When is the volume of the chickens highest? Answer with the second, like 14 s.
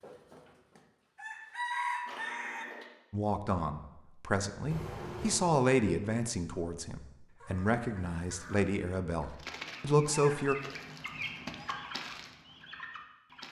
2 s.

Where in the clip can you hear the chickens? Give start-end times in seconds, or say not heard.
0.0-2.6, 7.3-13.4.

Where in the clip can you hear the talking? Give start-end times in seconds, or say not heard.
3.1-10.6.